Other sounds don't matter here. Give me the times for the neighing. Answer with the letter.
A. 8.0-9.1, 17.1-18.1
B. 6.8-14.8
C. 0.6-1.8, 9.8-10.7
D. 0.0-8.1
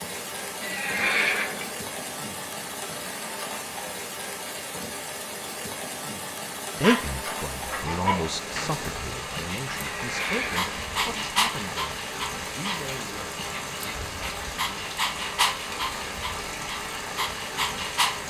C.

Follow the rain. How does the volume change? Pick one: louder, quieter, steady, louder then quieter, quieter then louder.
steady.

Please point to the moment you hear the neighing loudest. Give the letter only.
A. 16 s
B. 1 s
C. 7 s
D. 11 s
B.